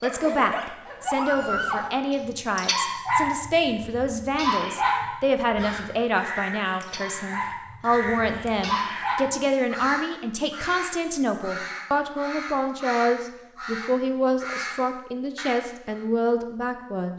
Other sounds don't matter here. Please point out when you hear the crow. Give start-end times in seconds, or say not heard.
5.3-16.1.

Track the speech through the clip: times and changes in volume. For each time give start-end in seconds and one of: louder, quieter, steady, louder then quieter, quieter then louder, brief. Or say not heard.
0.0-17.1 steady.